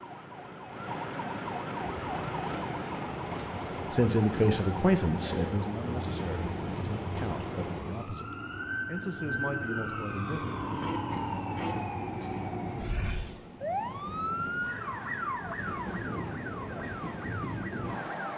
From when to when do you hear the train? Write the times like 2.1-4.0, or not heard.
1.8-8.1, 10.2-18.3.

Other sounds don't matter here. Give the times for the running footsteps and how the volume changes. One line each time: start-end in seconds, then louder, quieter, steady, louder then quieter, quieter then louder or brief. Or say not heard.
not heard.